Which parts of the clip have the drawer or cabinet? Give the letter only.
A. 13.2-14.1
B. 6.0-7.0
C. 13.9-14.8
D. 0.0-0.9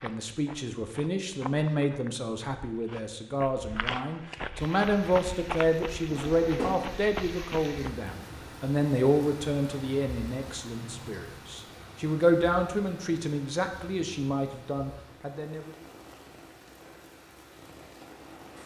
B.